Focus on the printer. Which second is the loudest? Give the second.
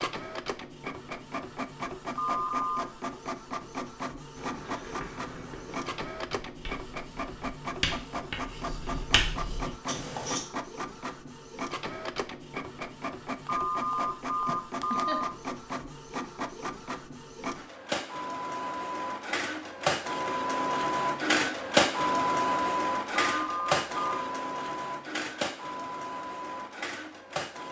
22 s.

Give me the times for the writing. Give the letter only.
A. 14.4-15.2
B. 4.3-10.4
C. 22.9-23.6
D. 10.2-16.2
B.